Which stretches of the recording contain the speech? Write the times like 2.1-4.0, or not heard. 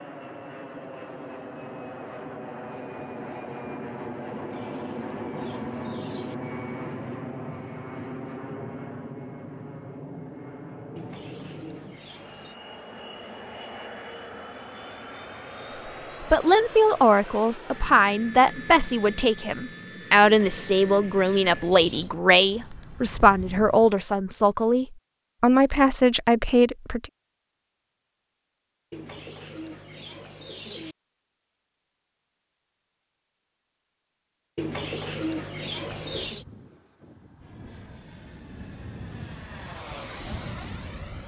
15.7-27.1.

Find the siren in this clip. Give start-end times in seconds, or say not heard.
not heard.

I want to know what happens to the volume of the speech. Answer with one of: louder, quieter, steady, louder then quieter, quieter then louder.
steady.